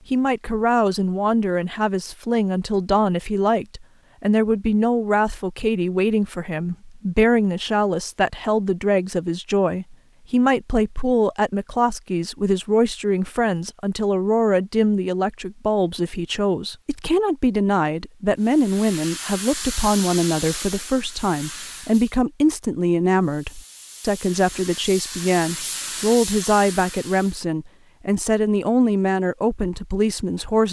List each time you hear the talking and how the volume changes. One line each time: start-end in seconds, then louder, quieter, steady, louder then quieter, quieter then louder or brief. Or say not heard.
0.1-30.6 steady.